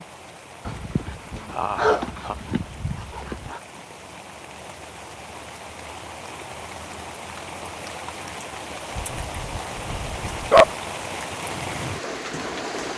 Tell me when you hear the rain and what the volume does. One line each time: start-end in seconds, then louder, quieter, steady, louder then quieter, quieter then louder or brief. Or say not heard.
0.0-12.9 louder.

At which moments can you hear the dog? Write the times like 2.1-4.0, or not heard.
0.7-3.6, 8.9-10.7.